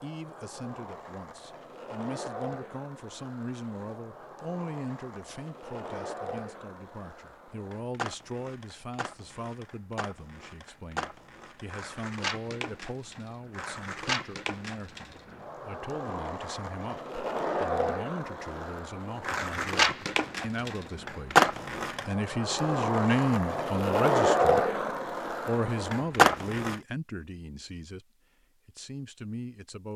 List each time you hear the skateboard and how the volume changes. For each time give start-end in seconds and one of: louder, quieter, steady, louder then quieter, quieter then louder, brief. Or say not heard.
0.0-26.8 louder.